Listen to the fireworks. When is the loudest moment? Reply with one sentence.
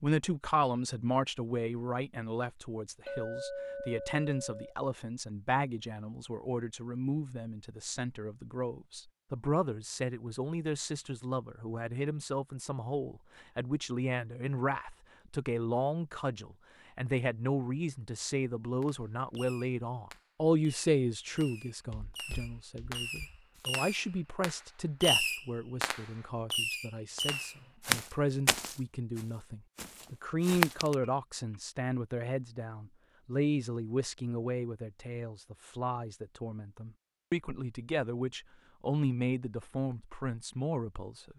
The volume of the fireworks peaks at 25 seconds.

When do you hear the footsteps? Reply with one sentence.
The footsteps can be heard from 21.9 to 23.7 s and from 27.4 to 30.9 s.